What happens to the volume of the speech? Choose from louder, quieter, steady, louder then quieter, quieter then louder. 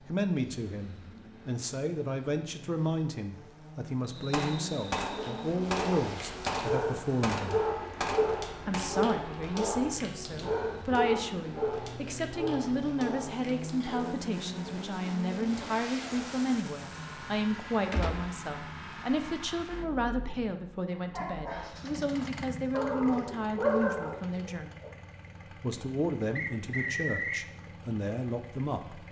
steady.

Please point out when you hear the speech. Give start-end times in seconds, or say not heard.
0.1-7.6, 8.7-24.8, 25.6-29.0.